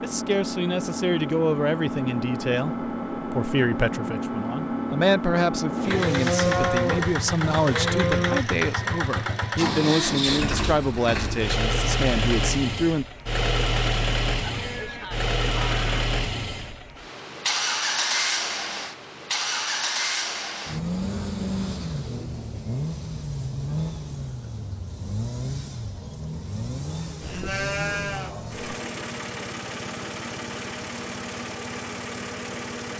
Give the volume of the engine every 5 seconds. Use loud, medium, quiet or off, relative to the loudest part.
loud, loud, loud, loud, loud, medium, medium.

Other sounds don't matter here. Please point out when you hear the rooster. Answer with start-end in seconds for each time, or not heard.
not heard.